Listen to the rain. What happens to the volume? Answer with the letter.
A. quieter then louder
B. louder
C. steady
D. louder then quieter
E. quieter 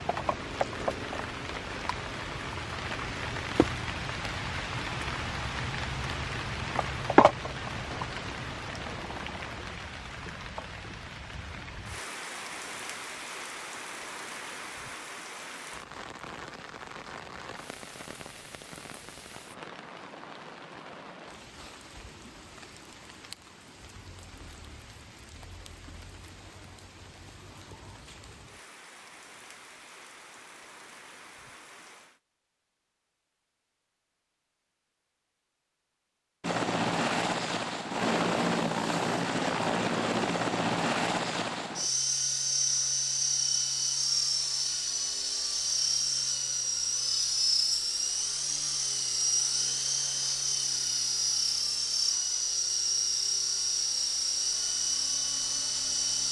E.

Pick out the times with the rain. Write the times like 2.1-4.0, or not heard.
0.0-32.2.